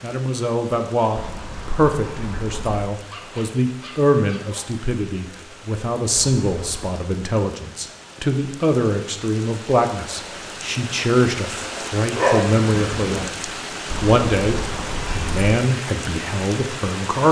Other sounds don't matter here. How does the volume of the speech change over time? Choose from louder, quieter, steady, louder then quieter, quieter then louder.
steady.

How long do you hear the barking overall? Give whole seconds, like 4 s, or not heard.
3 s.